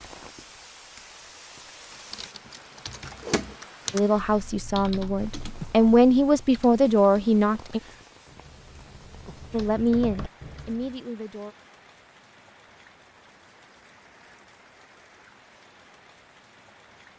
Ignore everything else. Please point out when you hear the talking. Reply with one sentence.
The talking can be heard from 3.9 to 7.8 s and from 9.5 to 11.6 s.